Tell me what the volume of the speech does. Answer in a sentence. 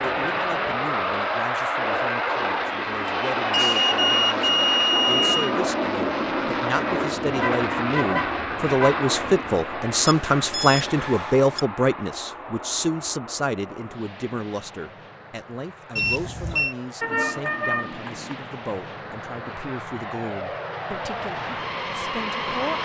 The volume of the speech goes up, then down.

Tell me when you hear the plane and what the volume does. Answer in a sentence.
You can hear the plane from 0.0 to 22.8 s, getting quieter then louder.